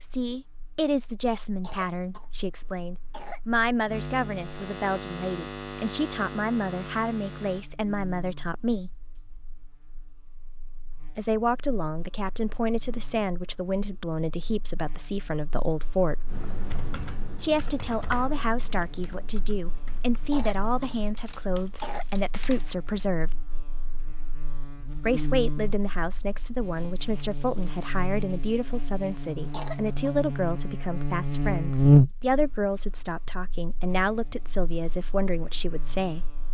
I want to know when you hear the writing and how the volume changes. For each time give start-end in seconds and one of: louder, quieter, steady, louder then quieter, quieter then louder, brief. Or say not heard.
not heard.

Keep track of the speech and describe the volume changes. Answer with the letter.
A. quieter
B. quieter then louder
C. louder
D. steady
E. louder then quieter
D.